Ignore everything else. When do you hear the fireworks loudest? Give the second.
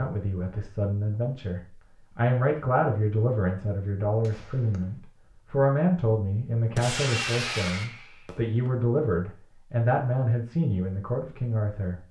7 s.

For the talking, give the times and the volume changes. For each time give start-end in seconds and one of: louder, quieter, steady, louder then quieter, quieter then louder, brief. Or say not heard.
0.0-12.0 steady.